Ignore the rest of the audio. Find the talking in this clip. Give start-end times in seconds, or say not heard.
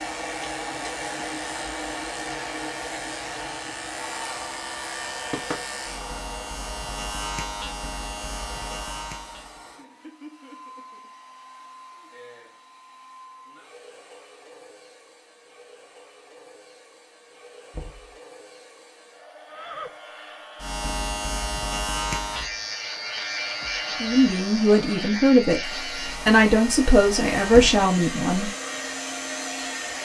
24.0-28.5.